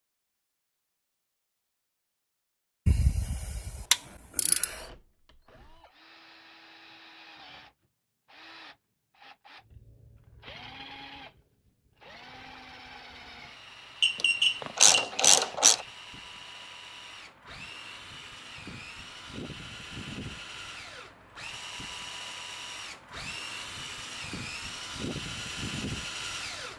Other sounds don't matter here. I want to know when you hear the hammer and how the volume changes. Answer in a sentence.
The hammer can't be heard in this clip.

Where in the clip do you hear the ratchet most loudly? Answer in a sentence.
The loudest moment of the ratchet is at 15 seconds.